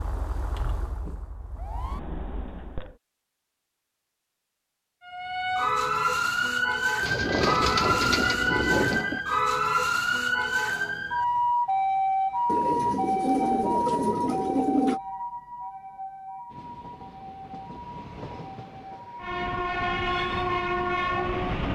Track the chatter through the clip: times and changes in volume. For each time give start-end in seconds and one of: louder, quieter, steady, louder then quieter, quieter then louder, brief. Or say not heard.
not heard.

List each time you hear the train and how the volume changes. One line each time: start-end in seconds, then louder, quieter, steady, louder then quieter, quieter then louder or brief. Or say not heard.
7.2-9.2 brief
16.4-21.7 louder.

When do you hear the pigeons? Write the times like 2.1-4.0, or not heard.
7.0-9.1, 12.4-15.0.